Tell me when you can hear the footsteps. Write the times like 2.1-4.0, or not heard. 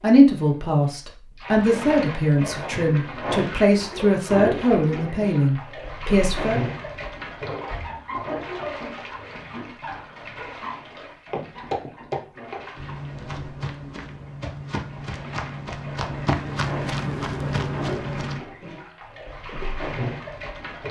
11.3-18.4.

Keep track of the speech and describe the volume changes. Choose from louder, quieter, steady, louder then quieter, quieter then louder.
steady.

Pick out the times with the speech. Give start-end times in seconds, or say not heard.
0.0-6.6.